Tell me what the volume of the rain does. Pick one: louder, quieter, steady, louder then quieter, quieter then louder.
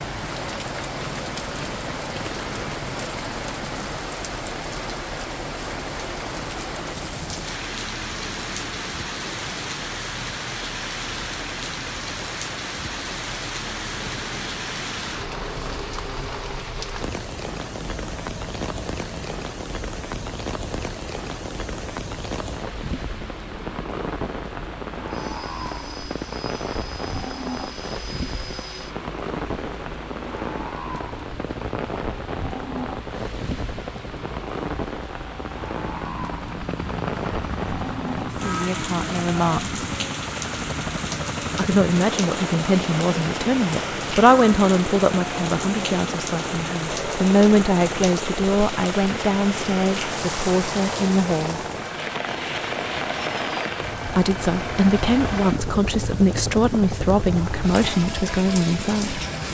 steady.